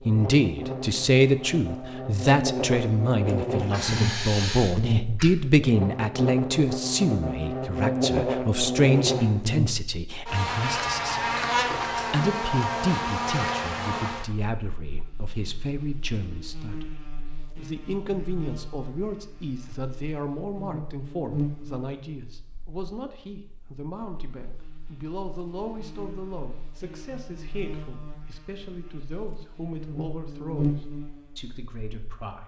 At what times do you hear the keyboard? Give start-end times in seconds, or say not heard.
not heard.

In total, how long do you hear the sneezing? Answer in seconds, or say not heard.
2 s.